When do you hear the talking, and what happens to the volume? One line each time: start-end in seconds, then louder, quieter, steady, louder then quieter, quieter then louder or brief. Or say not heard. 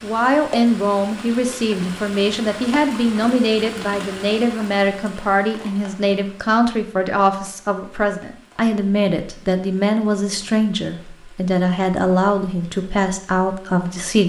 0.0-14.2 steady.